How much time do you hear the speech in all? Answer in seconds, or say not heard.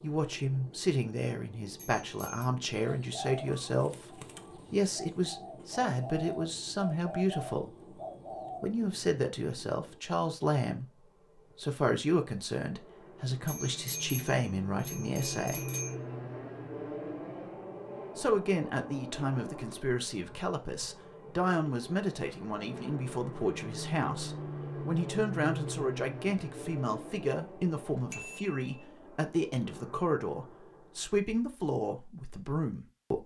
30 s.